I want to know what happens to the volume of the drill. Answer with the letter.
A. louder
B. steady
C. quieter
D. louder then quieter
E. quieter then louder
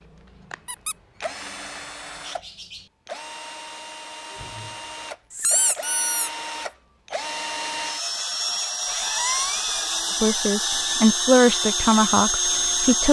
A.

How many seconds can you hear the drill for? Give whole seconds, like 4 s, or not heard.
13 s.